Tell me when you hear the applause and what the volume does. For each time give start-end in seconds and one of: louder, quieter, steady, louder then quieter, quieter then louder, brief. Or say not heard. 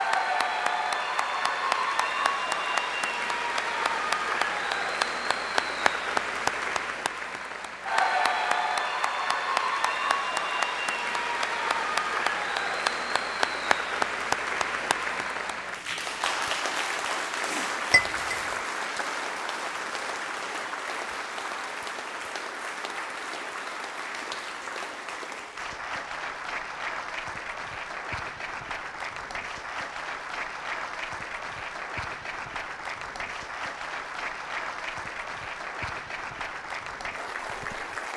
0.0-38.1 quieter.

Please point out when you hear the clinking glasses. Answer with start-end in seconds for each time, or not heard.
17.9-18.6.